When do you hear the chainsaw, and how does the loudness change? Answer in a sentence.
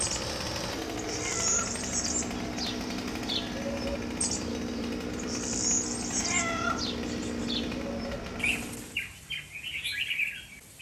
The chainsaw can be heard from 0.0 to 9.0 s, at a steady volume.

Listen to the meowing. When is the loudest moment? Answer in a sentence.
The loudest moment of the meowing is at 7 seconds.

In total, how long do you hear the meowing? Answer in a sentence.
You can hear the meowing for 2 seconds altogether.